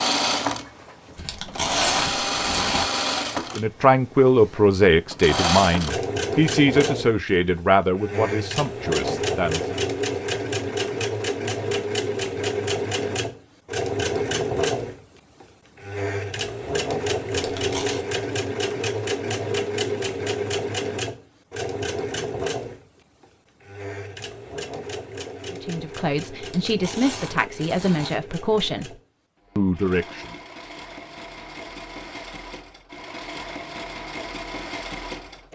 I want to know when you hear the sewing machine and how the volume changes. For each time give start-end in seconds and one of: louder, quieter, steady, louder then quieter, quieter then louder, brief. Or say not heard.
0.0-35.5 quieter.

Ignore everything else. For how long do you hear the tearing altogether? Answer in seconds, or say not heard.
4 s.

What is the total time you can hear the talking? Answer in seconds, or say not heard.
11 s.